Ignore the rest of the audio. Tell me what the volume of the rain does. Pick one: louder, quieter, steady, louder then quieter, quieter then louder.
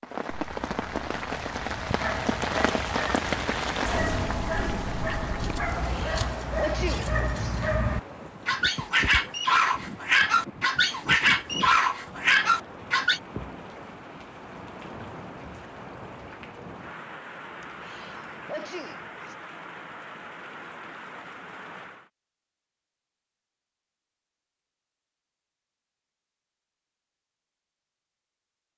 quieter.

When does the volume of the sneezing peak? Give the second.
7 s.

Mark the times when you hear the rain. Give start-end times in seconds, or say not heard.
0.0-22.1.